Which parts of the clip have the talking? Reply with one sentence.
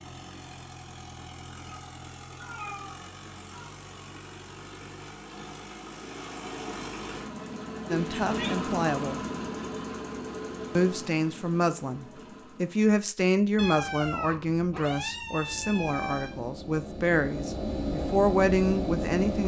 The talking can be heard from 7.9 to 9.2 s and from 10.8 to 19.4 s.